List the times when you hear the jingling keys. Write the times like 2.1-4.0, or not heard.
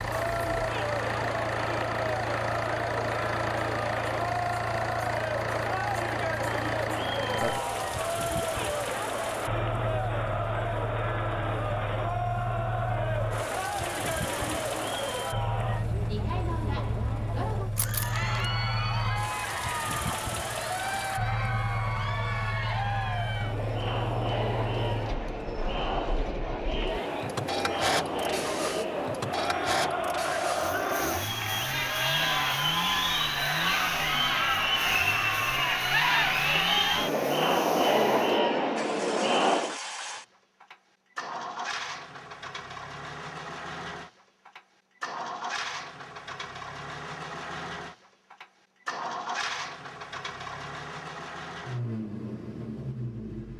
17.8-18.4.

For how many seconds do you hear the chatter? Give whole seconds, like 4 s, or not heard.
40 s.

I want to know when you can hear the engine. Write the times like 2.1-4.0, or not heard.
0.0-53.5.